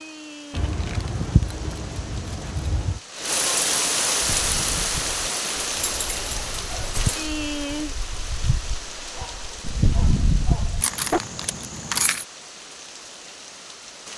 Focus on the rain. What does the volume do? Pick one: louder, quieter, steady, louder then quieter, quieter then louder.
louder then quieter.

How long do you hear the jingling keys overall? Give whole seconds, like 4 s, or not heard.
5 s.